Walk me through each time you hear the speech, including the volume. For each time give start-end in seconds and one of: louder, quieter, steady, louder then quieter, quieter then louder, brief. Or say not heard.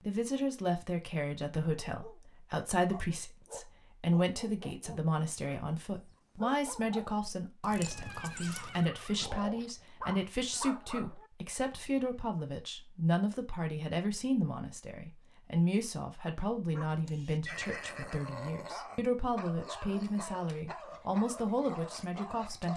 0.0-22.7 steady.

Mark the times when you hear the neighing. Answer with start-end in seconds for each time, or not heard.
7.7-9.7, 17.4-18.4.